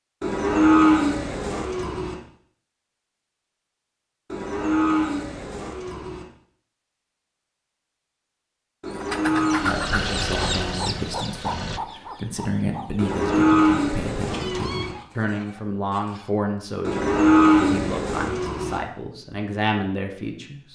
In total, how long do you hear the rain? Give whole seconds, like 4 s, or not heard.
not heard.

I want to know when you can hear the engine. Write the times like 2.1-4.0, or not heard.
9.4-11.8.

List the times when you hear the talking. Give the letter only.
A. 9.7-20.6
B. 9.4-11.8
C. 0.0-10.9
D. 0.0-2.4
A.